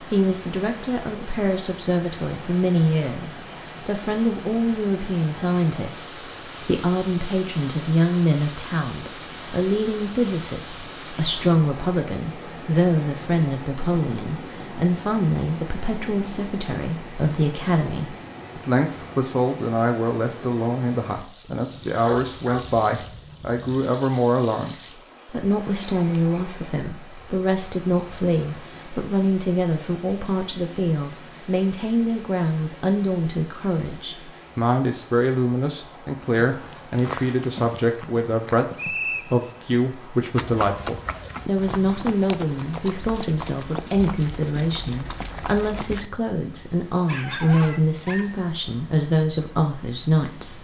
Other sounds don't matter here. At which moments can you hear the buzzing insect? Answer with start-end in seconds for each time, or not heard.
not heard.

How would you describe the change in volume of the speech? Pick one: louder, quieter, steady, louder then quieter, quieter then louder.
steady.